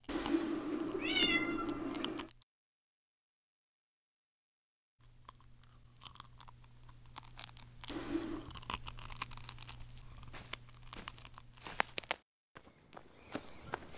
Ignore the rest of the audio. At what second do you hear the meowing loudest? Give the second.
1 s.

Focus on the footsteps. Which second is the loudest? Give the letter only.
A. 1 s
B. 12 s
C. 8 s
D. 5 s
B.